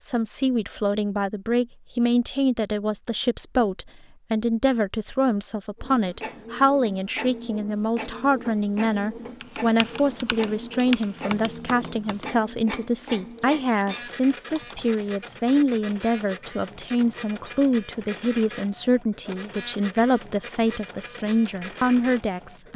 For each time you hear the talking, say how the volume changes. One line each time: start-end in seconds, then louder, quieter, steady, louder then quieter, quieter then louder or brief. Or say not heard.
0.0-22.7 steady.